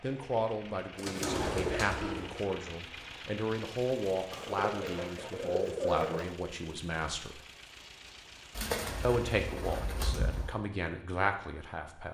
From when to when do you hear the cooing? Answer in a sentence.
You can hear the cooing from 0.9 to 2.5 s, from 4.3 to 6.3 s and from 8.5 to 10.6 s.